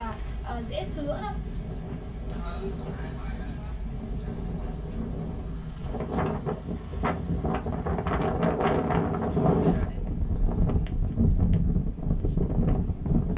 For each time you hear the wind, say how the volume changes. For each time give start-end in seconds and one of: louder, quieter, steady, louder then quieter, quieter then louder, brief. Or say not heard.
0.0-13.3 louder.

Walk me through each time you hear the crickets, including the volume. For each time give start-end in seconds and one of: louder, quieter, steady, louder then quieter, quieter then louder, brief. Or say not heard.
0.0-13.3 quieter.